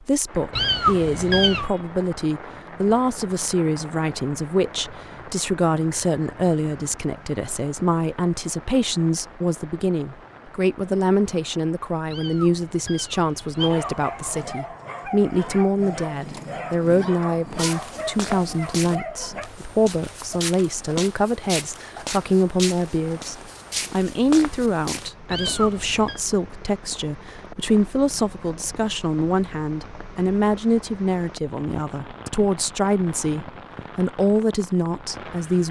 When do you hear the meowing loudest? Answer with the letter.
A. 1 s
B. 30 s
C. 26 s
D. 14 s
A.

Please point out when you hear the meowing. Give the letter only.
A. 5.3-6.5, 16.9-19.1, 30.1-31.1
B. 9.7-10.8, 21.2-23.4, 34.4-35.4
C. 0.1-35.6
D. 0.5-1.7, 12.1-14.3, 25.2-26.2
D.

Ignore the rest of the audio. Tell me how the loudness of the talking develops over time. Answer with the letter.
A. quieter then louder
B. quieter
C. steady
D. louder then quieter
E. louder
C.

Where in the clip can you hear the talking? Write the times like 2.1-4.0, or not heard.
0.1-35.6.